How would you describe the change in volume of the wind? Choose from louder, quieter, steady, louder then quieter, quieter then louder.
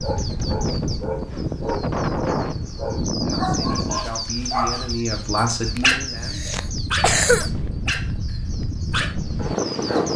quieter then louder.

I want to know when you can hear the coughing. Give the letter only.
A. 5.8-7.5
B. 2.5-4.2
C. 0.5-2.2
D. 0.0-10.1
A.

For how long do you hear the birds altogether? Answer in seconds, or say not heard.
10 s.